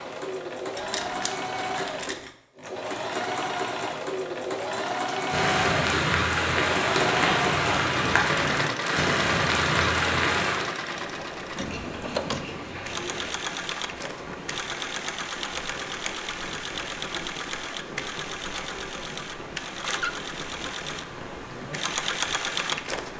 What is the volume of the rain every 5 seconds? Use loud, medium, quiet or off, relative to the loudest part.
off, loud, medium, quiet, quiet.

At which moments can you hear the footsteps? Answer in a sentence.
The footsteps can't be heard in this clip.